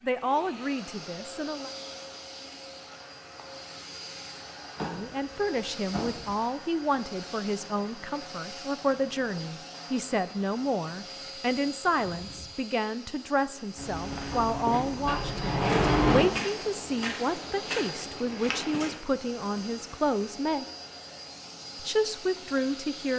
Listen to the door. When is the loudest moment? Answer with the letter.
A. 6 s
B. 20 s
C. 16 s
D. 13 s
C.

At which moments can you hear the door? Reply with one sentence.
The door can be heard from 4.8 to 6.3 s and from 14.3 to 16.4 s.